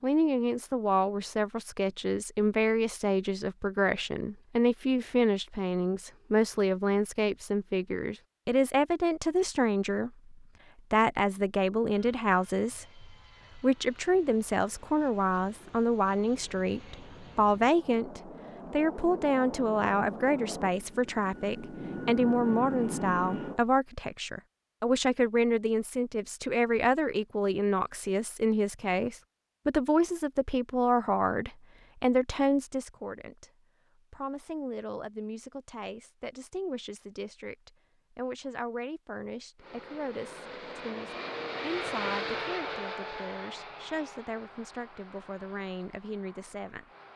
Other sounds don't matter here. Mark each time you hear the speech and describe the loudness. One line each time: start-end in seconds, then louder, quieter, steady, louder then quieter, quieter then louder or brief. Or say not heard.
0.0-46.9 quieter.